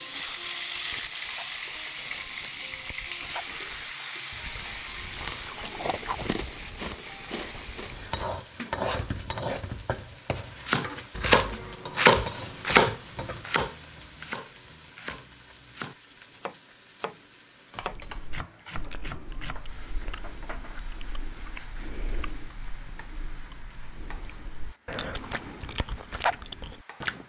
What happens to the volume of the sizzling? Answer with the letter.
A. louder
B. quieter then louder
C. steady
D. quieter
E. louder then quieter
D.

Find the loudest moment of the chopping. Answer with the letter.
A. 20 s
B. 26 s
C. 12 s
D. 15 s
C.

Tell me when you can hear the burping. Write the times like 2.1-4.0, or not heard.
not heard.